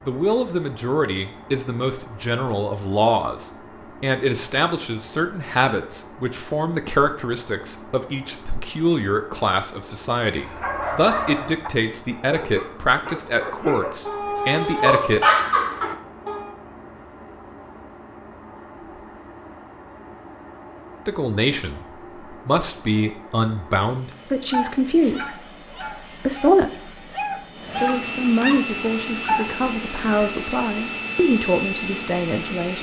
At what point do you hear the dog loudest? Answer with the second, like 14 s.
15 s.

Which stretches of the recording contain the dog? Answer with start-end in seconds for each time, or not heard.
10.4-16.5, 23.9-29.6.